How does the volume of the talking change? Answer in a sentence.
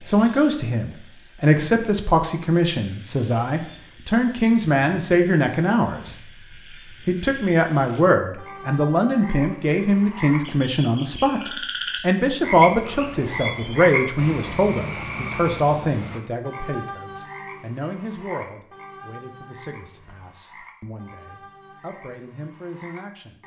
The loudness of the talking goes down.